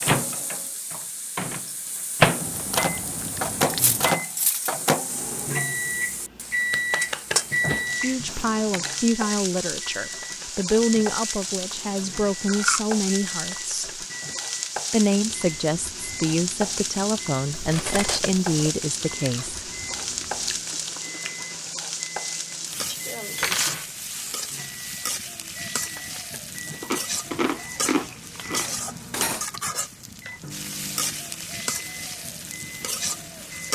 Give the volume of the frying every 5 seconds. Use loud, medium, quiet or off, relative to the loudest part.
medium, loud, loud, loud, loud, loud, loud.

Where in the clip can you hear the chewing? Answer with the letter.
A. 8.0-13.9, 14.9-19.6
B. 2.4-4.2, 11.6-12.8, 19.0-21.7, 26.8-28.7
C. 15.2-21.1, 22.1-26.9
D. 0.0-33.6
B.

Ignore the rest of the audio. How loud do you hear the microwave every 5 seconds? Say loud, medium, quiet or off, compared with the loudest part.
loud, medium, quiet, quiet, quiet, quiet, quiet.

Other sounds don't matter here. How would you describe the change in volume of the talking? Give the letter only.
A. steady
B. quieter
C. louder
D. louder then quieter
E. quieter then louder
A.